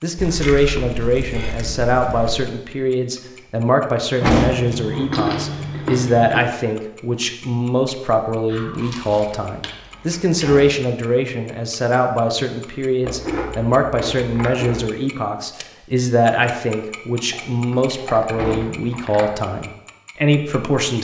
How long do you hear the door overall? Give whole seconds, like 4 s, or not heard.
2 s.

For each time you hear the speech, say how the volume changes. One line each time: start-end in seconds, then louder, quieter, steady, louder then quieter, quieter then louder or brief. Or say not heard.
0.0-20.9 steady.